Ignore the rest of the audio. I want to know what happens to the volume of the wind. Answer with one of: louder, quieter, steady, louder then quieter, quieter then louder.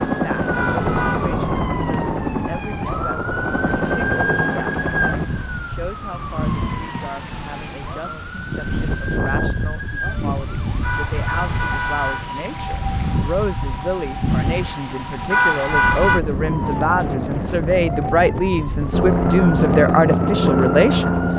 louder.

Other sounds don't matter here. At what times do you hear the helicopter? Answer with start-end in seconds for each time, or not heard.
0.0-5.2, 18.9-21.3.